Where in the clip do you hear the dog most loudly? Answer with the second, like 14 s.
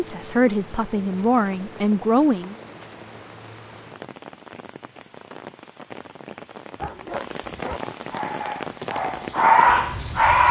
10 s.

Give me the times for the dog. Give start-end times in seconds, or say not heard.
6.8-10.4.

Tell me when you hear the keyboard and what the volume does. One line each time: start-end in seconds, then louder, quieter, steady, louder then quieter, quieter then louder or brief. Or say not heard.
not heard.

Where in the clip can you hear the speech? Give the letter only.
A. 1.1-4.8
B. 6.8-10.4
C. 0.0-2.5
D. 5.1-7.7
C.